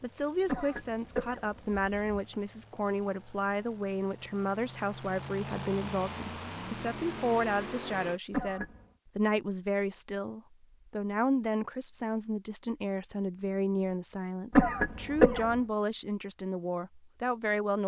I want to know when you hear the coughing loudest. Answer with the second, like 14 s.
15 s.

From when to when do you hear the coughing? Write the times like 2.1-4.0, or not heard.
0.5-2.2, 8.3-8.8, 14.5-15.6.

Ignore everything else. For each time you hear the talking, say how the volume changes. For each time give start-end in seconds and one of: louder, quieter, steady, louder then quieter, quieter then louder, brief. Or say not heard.
0.0-17.8 steady.